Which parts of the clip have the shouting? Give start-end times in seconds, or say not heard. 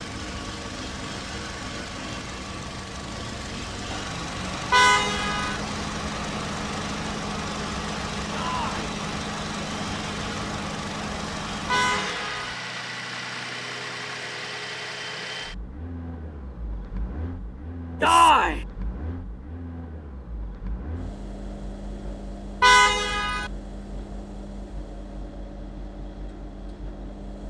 8.3-8.8, 18.0-18.6.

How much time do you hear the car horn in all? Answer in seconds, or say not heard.
3 s.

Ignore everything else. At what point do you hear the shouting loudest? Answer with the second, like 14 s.
18 s.